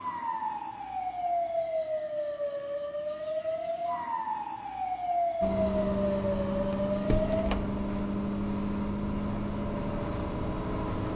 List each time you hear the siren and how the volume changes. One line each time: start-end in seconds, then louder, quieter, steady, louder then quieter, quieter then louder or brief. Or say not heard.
0.0-7.5 steady.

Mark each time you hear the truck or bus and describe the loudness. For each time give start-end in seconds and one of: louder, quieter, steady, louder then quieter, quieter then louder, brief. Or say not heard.
5.4-11.1 steady.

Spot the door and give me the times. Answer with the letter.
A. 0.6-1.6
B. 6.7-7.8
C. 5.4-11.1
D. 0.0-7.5
B.